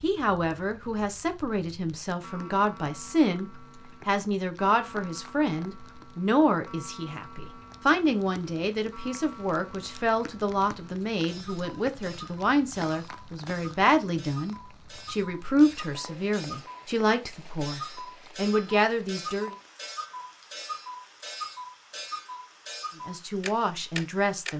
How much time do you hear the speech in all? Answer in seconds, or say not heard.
21 s.